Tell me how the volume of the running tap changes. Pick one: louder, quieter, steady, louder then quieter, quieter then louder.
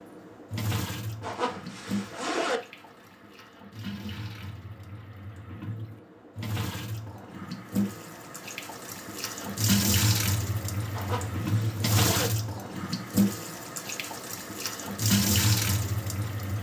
louder.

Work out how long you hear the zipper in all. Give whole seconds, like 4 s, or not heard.
3 s.